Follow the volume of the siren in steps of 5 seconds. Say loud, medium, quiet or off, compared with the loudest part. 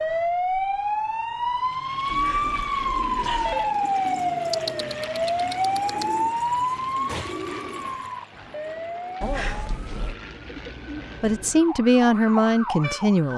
loud, loud, medium.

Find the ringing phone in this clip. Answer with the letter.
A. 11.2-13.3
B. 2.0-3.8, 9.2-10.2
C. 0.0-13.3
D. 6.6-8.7
B.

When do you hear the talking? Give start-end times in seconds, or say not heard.
11.2-13.3.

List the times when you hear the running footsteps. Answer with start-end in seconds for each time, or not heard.
not heard.